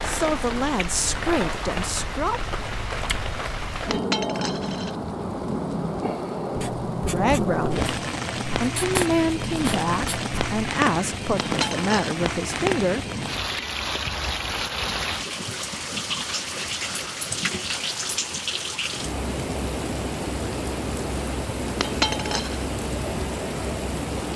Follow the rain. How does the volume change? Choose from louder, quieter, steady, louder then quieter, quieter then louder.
steady.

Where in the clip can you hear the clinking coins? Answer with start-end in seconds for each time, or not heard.
3.9-5.0, 11.4-11.9, 21.8-22.6.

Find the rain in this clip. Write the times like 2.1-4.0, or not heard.
0.0-24.3.